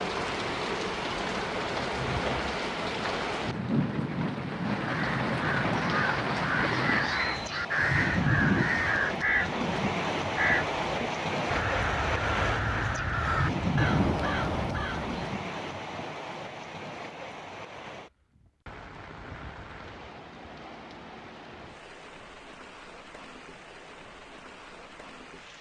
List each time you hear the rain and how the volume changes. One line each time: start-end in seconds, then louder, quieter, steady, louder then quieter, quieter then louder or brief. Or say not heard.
0.0-25.5 quieter.